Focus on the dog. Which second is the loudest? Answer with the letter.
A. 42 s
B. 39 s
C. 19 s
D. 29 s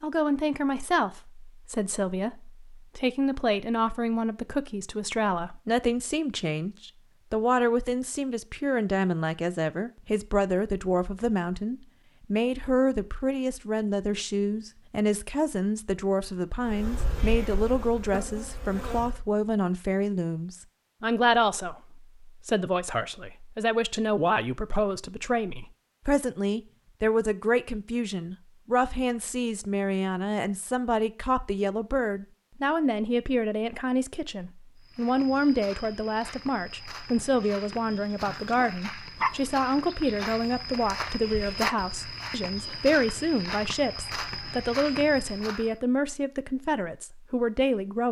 B.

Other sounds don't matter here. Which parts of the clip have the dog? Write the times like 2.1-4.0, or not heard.
37.4-39.4.